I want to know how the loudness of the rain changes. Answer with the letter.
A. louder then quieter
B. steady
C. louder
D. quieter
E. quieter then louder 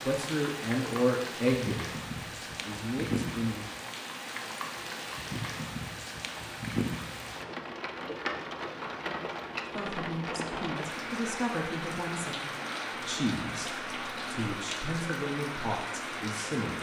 B.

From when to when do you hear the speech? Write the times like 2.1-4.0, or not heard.
0.0-3.6, 9.8-16.7.